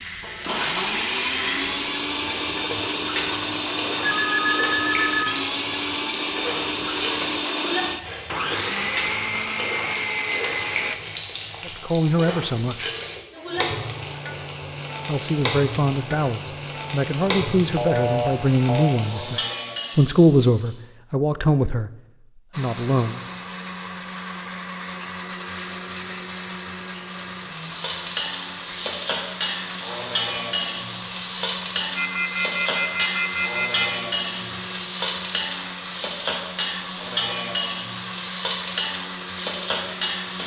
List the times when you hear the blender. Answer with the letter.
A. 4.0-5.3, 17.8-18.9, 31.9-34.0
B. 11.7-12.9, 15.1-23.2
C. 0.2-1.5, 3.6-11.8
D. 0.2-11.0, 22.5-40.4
D.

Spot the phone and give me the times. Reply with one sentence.
You can hear the phone from 4.0 to 5.3 s, from 17.8 to 18.9 s and from 31.9 to 34.0 s.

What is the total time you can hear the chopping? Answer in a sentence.
You can't hear the chopping here.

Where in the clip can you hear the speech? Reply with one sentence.
The speech can be heard from 11.7 to 12.9 s and from 15.1 to 23.2 s.